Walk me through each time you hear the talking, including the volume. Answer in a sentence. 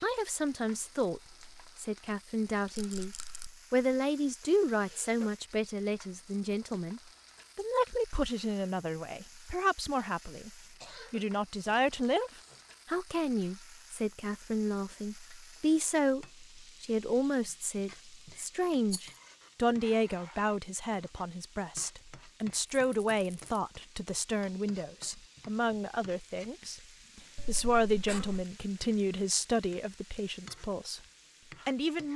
The talking can be heard from 0.0 to 31.0 s, at a steady volume; and briefly from 31.6 to 32.1 s.